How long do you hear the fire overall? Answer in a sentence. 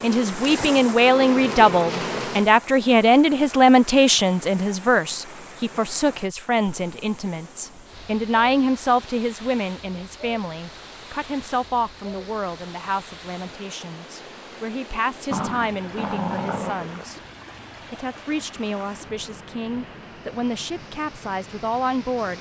The fire can't be heard in this clip.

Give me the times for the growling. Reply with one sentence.
The growling can be heard from 15.3 to 17.1 s.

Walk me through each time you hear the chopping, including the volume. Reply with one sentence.
The chopping can't be heard in this clip.